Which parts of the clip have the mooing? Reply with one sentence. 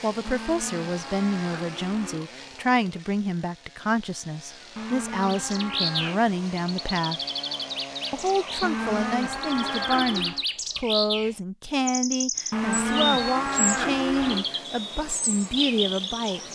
You can hear the mooing from 0.2 to 2.2 s, from 4.8 to 6.3 s, from 8.6 to 10.4 s and from 12.5 to 14.5 s.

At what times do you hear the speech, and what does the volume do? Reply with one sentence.
You can hear the speech from 0.0 to 7.2 s, at a steady volume; and from 8.1 to 16.4 s, at a steady volume.